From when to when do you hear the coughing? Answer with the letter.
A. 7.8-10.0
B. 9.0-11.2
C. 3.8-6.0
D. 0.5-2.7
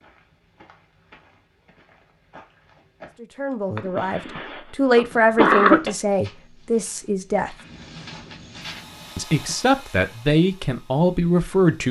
C.